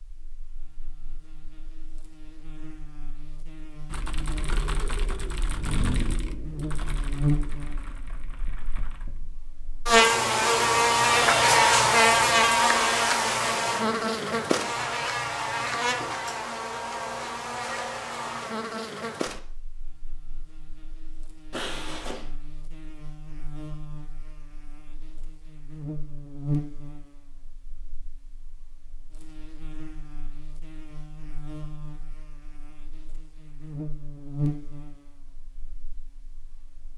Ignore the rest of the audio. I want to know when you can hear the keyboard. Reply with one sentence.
You can hear the keyboard from 3.9 to 9.3 s.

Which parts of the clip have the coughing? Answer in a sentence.
The coughing can be heard from 21.5 to 22.3 s.